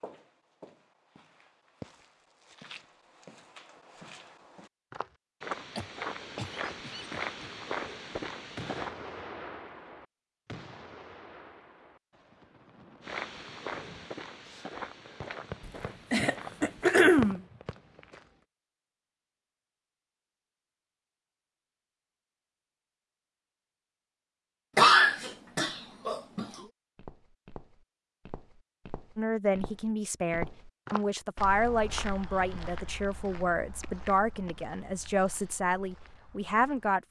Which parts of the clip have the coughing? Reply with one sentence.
The coughing can be heard from 5.8 to 7.5 s, from 15.7 to 17.4 s and from 24.8 to 26.6 s.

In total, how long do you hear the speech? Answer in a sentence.
The speech can be heard for 8 seconds in total.